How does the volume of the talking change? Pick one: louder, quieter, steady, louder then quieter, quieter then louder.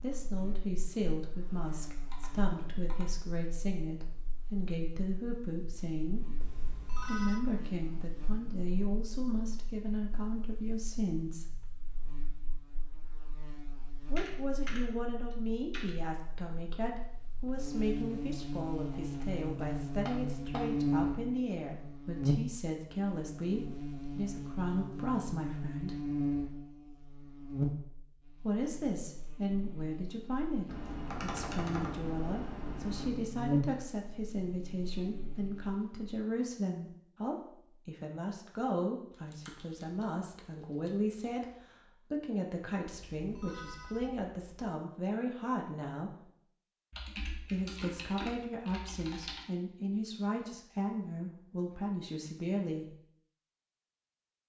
steady.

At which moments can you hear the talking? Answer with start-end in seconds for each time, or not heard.
0.0-6.3, 7.0-11.6, 13.9-26.0, 28.4-41.5, 42.1-46.3, 47.4-53.0.